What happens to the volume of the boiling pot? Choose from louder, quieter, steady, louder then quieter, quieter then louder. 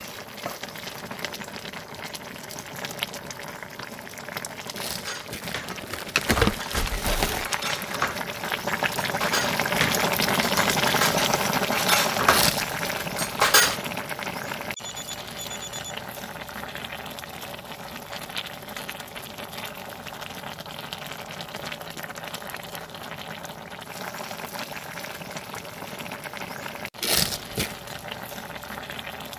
louder then quieter.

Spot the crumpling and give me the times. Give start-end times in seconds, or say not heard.
4.8-7.5, 12.2-12.8, 27.0-27.8.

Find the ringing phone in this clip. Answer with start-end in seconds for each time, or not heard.
14.8-16.0.